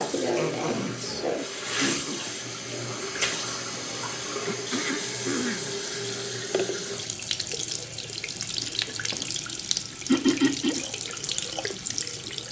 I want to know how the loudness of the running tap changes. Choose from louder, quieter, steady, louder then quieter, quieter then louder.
steady.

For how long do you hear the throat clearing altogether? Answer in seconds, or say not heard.
4 s.